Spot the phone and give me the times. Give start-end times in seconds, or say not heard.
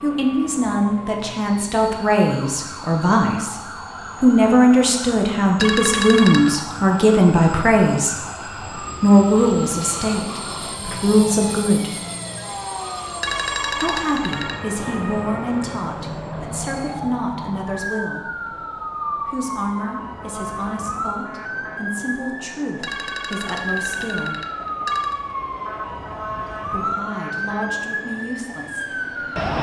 5.5-6.6, 13.2-14.6, 22.8-25.2.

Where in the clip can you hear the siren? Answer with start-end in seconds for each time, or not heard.
0.0-29.5.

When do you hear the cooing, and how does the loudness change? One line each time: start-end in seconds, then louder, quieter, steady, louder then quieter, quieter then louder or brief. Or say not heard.
not heard.